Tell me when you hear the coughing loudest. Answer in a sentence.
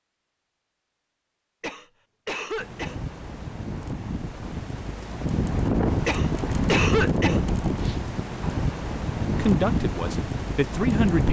The loudest moment of the coughing is at 7 seconds.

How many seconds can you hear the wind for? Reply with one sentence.
You can hear the wind for 9 seconds altogether.